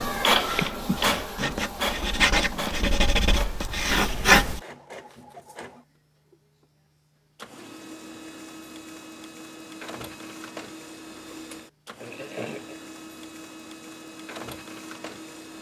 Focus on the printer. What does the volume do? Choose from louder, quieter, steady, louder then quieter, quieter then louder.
quieter.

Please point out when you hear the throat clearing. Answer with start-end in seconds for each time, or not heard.
0.6-1.6, 12.0-12.8.